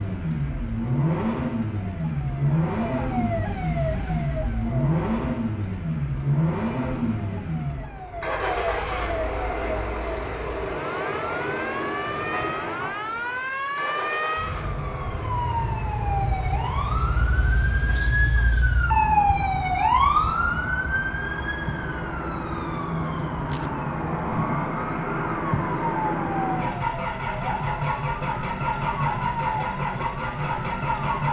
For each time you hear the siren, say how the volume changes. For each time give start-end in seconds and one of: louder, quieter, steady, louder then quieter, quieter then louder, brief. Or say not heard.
0.0-31.2 louder then quieter.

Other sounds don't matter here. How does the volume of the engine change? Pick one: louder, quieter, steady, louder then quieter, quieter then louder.
quieter then louder.